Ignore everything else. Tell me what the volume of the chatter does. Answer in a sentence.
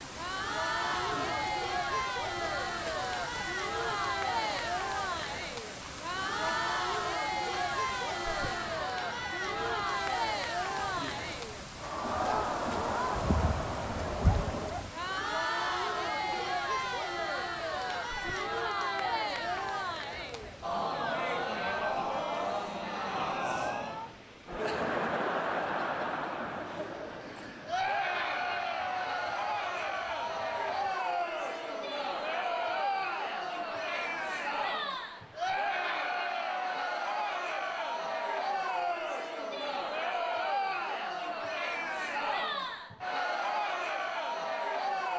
The loudness of the chatter stays about the same.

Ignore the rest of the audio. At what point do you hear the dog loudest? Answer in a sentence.
The loudest moment of the dog is at 14 seconds.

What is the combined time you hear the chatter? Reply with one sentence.
The chatter can be heard for 45 seconds in total.